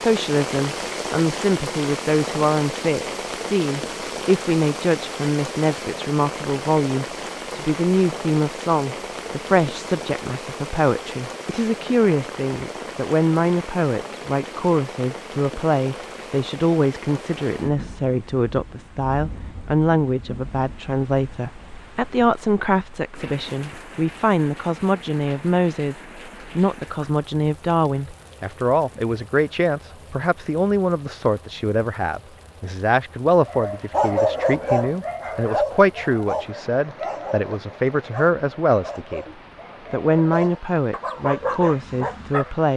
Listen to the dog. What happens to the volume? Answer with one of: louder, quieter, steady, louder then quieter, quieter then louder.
quieter then louder.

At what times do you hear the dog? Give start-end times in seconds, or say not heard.
33.4-42.5.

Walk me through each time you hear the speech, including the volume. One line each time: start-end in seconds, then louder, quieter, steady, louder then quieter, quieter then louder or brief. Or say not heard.
0.0-39.2 steady
39.9-42.7 brief.